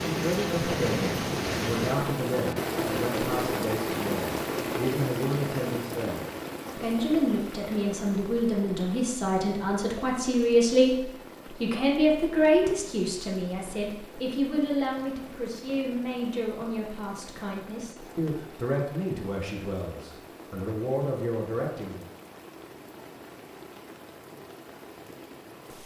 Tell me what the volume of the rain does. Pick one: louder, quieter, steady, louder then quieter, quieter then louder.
quieter.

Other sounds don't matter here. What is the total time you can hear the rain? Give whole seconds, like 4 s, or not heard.
26 s.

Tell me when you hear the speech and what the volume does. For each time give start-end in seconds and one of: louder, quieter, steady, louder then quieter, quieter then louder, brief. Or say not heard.
0.1-22.1 louder then quieter.